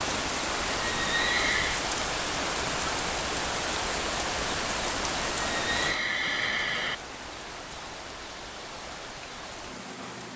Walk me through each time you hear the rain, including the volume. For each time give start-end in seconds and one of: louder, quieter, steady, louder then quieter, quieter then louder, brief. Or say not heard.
0.0-10.3 quieter.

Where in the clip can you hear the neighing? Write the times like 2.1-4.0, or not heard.
0.8-1.9, 5.4-7.0.